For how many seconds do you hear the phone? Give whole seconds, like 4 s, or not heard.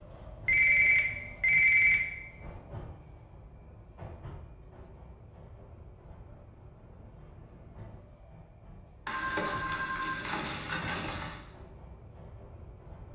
4 s.